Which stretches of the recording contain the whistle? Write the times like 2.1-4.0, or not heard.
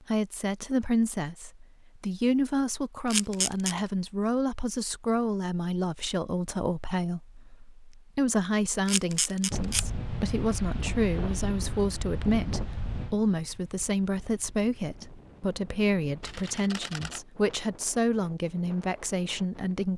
not heard.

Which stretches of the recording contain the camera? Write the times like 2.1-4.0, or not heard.
3.1-3.8, 8.8-9.8, 16.2-17.2.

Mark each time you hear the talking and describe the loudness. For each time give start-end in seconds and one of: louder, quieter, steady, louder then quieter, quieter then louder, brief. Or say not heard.
0.1-19.9 steady.